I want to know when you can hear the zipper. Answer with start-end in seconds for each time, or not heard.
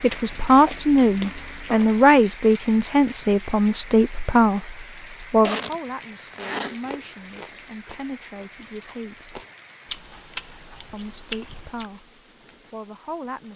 5.4-6.8.